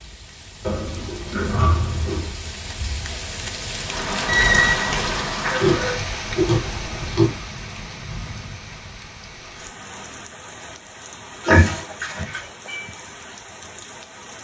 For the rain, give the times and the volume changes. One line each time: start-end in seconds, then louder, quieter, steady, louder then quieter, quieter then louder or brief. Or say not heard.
0.0-14.3 louder then quieter.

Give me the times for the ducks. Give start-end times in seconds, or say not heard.
not heard.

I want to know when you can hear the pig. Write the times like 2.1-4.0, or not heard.
0.6-2.4, 5.4-7.3, 11.4-12.4.